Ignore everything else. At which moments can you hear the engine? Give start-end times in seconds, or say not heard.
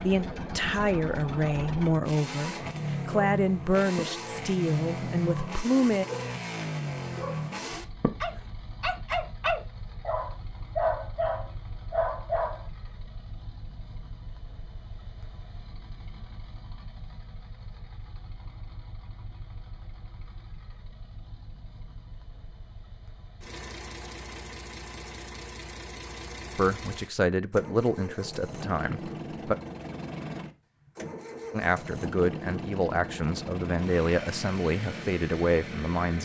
0.0-36.1.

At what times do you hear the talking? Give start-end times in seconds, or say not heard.
0.0-6.0, 26.6-29.6, 31.5-36.1.